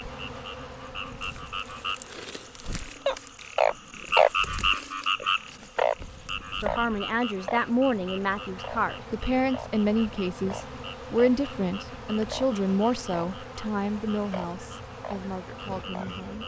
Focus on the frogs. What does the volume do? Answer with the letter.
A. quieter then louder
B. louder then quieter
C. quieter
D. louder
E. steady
B.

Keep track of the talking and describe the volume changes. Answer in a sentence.
The loudness of the talking goes down.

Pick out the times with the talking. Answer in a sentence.
You can hear the talking from 6.6 to 16.4 s.